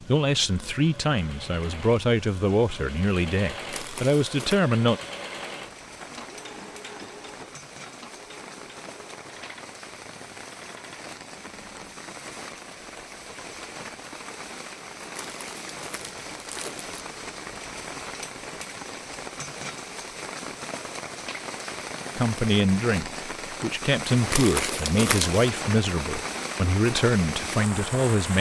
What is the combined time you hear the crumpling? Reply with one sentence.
You can hear the crumpling for 4 seconds altogether.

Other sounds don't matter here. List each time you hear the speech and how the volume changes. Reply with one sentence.
You can hear the speech from 0.1 to 5.0 s, at a steady volume; and from 22.1 to 28.3 s, at a steady volume.